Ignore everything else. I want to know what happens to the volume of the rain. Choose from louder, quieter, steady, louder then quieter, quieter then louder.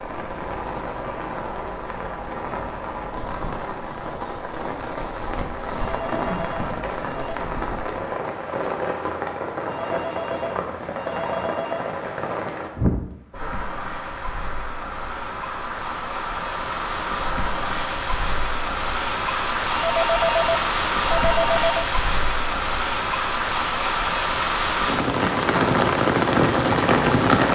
louder.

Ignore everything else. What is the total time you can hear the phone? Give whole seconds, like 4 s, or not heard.
6 s.